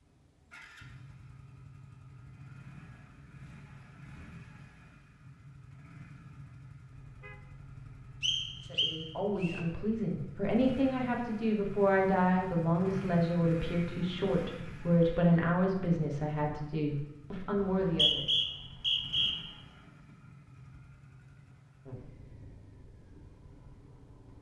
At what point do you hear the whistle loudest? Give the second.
18 s.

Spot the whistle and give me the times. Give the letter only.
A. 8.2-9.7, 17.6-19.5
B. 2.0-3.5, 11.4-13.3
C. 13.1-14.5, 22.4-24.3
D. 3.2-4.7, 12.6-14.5
A.